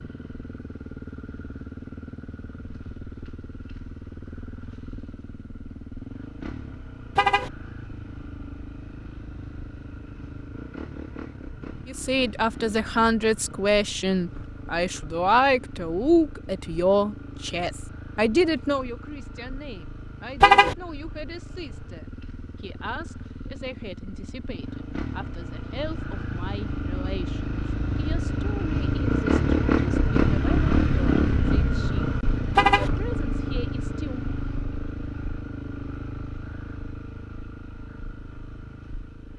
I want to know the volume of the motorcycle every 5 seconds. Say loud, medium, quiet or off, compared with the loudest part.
quiet, quiet, quiet, quiet, quiet, loud, loud, quiet.